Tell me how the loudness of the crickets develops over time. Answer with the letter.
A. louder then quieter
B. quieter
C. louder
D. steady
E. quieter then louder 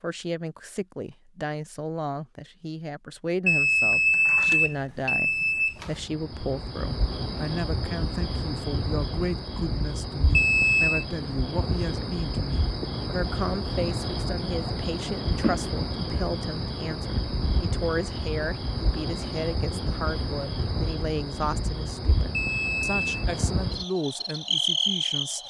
D.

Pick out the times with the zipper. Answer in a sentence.
You can't hear the zipper here.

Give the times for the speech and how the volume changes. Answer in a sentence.
You can hear the speech from 0.0 to 25.4 s, at a steady volume.